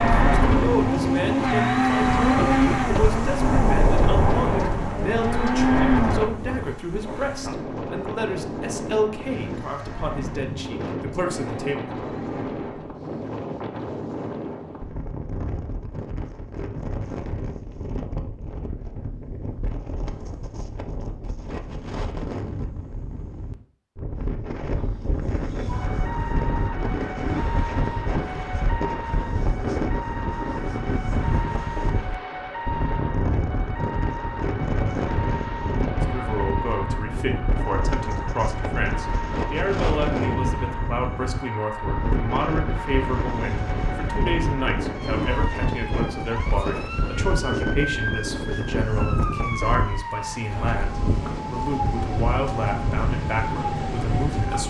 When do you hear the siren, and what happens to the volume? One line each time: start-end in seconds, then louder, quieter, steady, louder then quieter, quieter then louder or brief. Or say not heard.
25.6-54.6 steady.